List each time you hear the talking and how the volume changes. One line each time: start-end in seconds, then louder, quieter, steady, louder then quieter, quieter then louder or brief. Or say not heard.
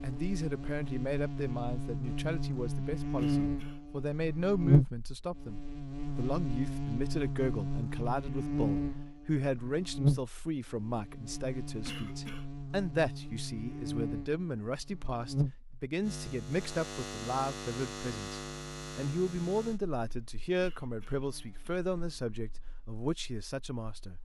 0.0-24.2 steady.